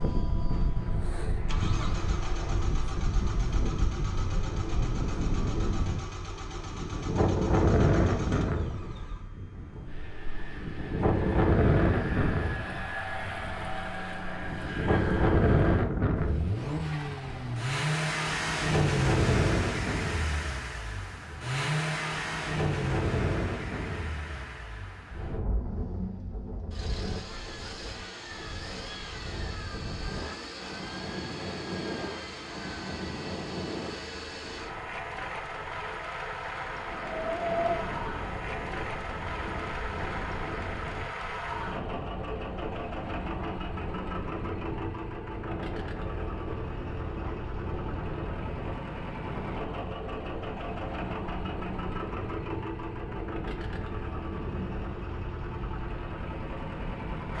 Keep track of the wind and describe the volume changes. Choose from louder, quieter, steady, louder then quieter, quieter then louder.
quieter.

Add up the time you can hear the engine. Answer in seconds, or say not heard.
57 s.